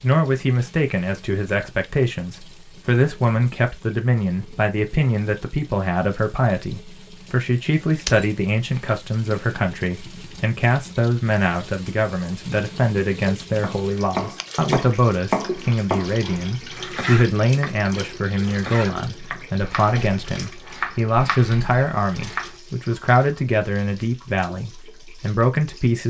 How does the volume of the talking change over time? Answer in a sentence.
The volume of the talking stays about the same.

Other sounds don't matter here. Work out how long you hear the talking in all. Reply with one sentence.
You can hear the talking for 26 seconds altogether.